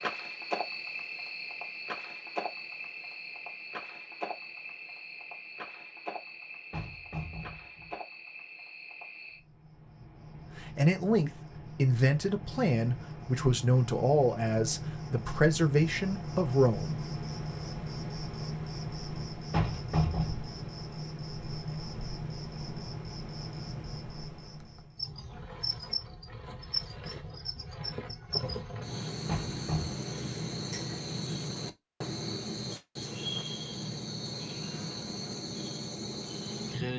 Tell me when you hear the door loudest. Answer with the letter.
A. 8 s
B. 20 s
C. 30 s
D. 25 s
B.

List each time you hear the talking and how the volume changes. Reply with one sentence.
The talking can be heard from 10.6 to 16.9 s, at a steady volume.